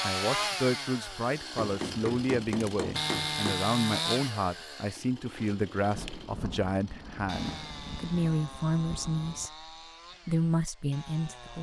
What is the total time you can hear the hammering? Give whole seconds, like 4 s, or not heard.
2 s.